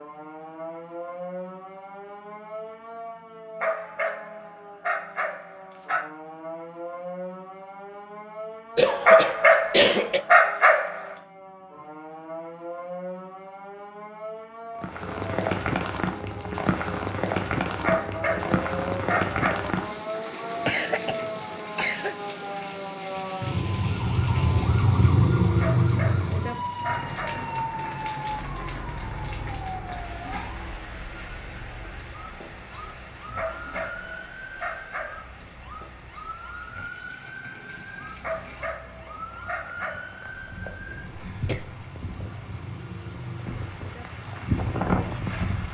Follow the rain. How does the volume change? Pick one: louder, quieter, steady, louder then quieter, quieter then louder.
quieter then louder.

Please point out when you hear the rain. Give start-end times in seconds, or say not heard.
14.8-45.6.